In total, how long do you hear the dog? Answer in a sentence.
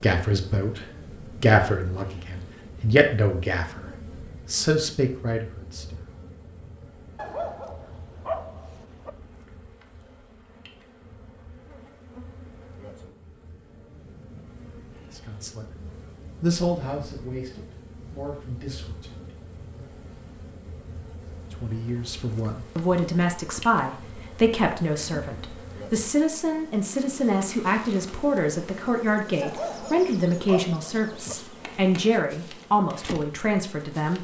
You can hear the dog for 4 seconds altogether.